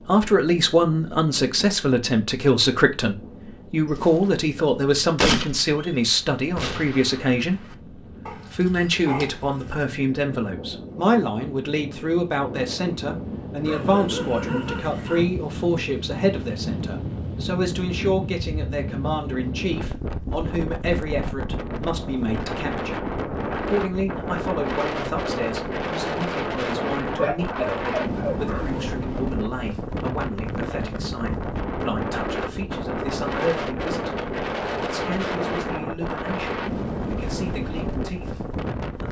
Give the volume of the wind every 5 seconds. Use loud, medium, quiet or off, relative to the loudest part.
quiet, quiet, medium, loud, loud, loud, loud, loud.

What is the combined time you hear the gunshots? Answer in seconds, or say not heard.
4 s.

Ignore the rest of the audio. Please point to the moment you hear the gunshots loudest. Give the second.
5 s.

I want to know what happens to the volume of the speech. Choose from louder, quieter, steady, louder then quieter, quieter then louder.
quieter.